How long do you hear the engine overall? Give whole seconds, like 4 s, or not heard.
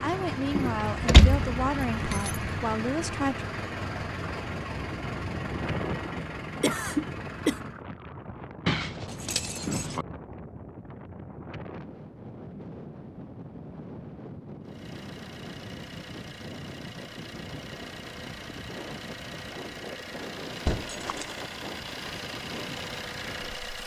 17 s.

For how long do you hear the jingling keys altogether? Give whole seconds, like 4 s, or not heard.
4 s.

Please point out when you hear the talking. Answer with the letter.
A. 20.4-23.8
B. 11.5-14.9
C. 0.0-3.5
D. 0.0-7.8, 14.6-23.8
C.